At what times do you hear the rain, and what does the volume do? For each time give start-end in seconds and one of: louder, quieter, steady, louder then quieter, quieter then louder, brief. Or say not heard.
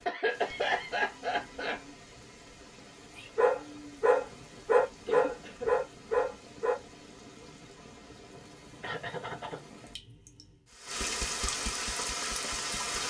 0.0-13.0 louder.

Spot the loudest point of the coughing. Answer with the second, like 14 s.
1 s.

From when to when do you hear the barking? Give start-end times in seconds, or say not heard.
3.1-6.8.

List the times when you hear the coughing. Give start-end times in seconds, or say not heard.
0.1-1.8, 5.0-5.7, 8.8-9.7.